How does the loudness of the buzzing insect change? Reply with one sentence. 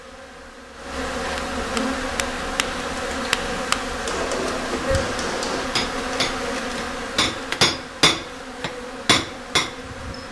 The volume of the buzzing insect goes down.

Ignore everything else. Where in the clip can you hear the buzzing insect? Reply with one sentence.
The buzzing insect can be heard from 0.0 to 10.2 s.